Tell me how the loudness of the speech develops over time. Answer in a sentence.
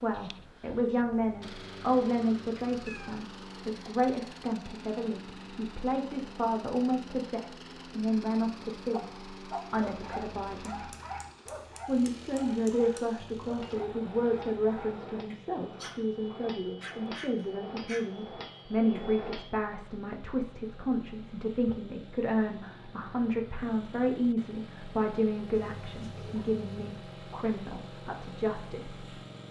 The loudness of the speech stays about the same.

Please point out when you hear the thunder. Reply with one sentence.
You can't hear the thunder here.